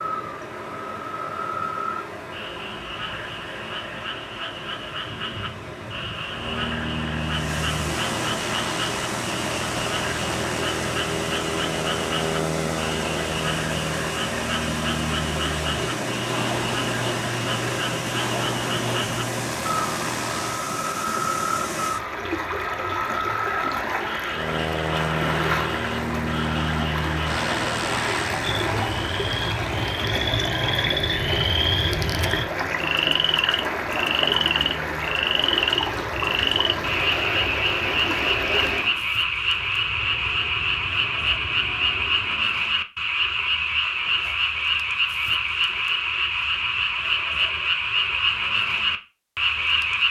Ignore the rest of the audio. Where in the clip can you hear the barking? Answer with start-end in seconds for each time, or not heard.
not heard.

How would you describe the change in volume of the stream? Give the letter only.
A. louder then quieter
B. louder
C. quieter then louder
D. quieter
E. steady
B.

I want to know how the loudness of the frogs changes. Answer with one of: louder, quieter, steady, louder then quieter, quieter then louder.
louder.